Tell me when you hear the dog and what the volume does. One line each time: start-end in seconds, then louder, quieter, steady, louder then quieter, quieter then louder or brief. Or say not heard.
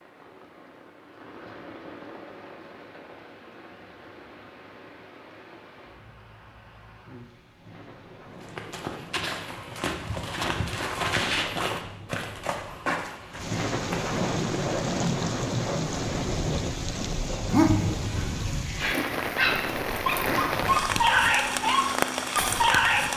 17.4-23.1 louder.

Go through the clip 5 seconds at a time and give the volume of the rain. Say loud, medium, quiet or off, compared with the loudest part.
quiet, quiet, loud, loud, loud.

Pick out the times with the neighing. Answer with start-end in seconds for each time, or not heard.
not heard.